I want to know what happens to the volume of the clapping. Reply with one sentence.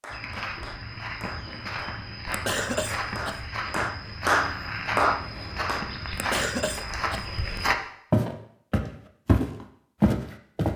The loudness of the clapping goes up.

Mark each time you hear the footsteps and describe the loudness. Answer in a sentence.
You can hear the footsteps from 0.1 to 10.7 s, getting louder.